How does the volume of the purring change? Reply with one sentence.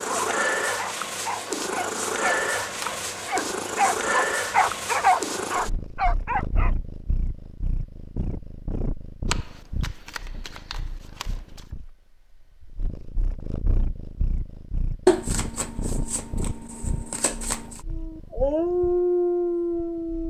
The loudness of the purring goes down.